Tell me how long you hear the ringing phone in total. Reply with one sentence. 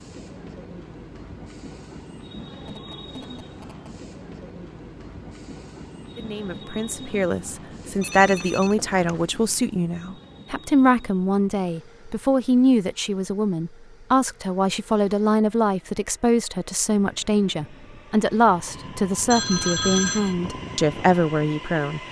The ringing phone can be heard for 4 seconds in total.